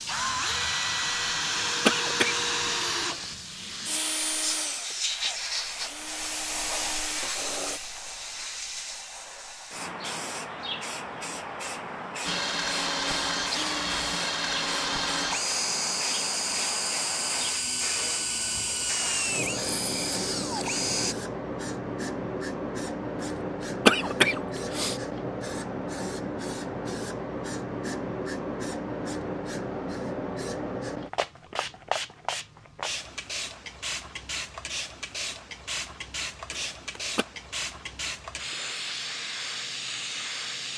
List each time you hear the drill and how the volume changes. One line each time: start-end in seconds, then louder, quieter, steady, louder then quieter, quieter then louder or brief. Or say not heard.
0.1-7.8 quieter
12.2-21.1 steady.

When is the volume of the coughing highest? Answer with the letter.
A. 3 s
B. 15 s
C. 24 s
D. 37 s
C.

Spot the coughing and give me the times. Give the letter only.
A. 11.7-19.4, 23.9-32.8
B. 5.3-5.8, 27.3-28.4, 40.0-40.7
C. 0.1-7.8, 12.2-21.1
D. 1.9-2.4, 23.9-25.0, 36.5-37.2
D.